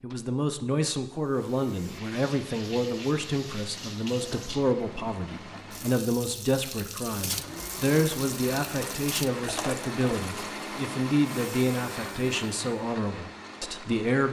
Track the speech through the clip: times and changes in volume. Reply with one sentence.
The speech can be heard from 0.0 to 14.2 s, at a steady volume.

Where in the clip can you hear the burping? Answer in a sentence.
You can't hear the burping here.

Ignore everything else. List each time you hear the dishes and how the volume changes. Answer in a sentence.
The dishes can't be heard in this clip.